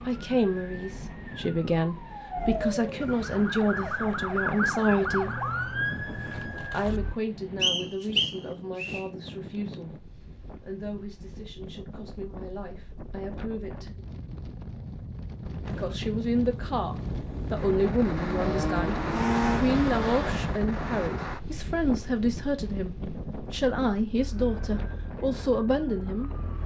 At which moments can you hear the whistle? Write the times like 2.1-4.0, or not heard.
7.6-9.0.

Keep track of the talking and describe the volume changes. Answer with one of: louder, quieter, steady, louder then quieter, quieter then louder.
quieter then louder.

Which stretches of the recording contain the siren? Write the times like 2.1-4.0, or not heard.
0.0-7.2, 24.1-26.6.